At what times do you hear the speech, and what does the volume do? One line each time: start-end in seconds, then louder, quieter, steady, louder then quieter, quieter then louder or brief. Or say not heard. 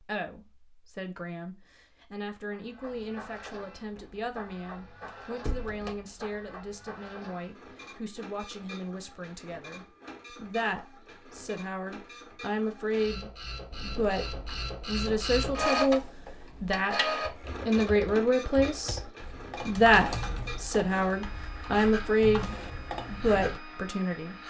0.0-24.4 louder.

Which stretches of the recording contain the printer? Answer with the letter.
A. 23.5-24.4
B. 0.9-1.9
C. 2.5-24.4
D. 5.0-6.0
C.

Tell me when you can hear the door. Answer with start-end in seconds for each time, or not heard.
5.0-6.0.